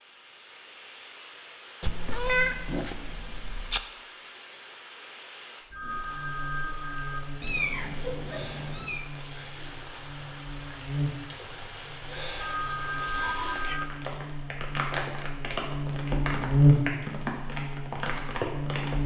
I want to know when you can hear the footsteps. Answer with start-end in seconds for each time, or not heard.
not heard.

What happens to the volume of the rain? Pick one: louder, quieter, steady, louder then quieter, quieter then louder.
louder.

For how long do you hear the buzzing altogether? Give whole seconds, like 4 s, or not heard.
13 s.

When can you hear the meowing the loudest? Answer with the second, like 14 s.
2 s.